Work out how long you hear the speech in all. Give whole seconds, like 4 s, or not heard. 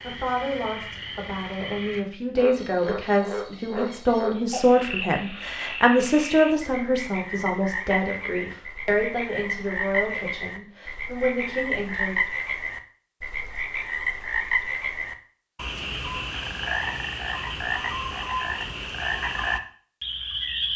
12 s.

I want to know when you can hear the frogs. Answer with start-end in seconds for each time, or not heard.
0.0-20.7.